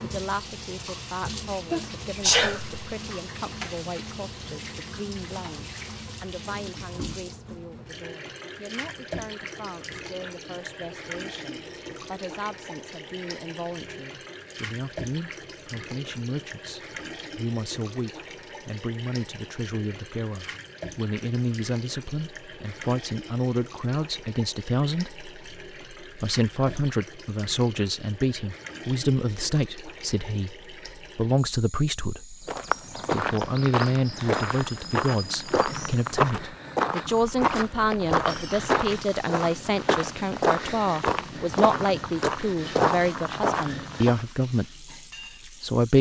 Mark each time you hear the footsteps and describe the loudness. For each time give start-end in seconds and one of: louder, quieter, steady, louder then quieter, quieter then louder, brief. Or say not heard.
32.5-44.2 steady.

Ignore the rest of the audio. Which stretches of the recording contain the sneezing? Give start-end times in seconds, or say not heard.
1.2-2.8.